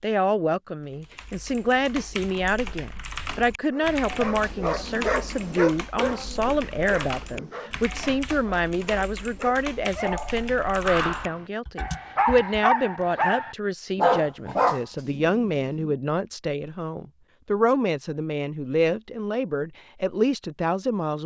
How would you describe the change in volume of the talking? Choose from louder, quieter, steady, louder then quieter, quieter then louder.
steady.